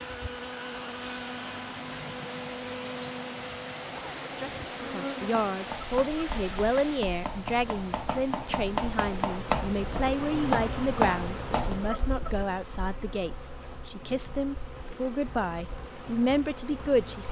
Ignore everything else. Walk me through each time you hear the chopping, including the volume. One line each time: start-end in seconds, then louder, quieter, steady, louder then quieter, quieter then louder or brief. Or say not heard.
5.2-11.9 louder.